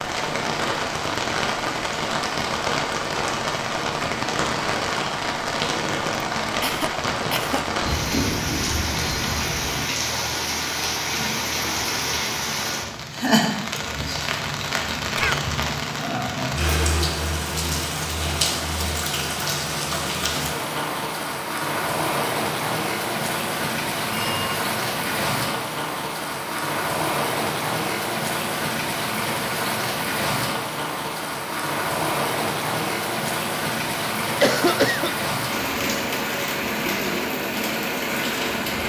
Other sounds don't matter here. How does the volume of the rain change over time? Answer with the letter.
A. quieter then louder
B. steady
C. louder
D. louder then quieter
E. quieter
B.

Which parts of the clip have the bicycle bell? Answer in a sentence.
The bicycle bell can be heard from 7.8 to 9.8 s and from 24.1 to 24.6 s.